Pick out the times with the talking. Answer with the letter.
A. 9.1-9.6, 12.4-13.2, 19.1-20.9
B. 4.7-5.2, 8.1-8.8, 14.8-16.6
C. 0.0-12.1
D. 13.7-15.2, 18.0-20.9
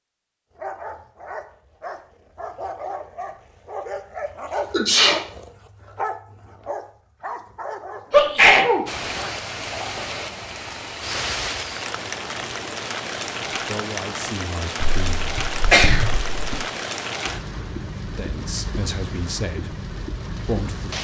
D.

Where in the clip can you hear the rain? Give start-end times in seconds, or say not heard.
8.8-20.9.